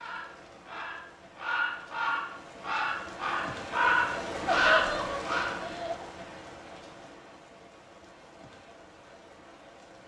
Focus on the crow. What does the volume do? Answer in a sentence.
The volume of the crow goes up.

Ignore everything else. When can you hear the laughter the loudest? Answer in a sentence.
The loudest moment of the laughter is at 5 seconds.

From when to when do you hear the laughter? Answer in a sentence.
The laughter can be heard from 4.5 to 6.0 s.